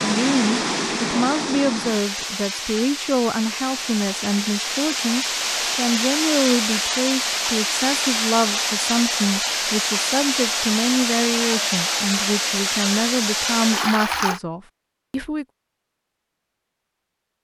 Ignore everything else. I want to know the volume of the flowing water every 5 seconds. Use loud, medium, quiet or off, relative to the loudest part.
loud, loud, loud, off.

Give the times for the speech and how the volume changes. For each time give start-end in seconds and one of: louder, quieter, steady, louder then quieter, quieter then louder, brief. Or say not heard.
0.0-15.4 steady.